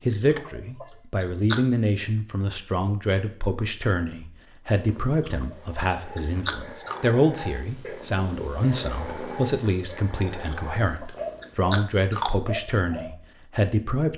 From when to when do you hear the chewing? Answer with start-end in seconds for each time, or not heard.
0.2-1.6, 5.2-7.0, 10.5-12.3.